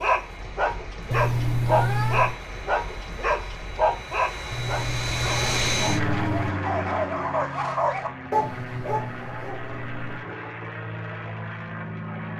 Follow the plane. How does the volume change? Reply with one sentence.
The loudness of the plane goes up, then down.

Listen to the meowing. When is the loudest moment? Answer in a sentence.
The loudest moment of the meowing is at 2 seconds.